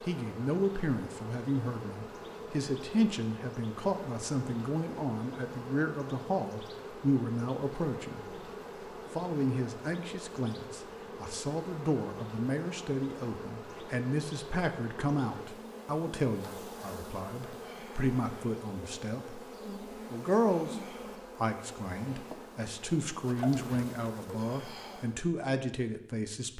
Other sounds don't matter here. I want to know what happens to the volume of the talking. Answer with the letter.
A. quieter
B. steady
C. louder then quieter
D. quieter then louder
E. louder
B.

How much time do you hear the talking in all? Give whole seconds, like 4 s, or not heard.
26 s.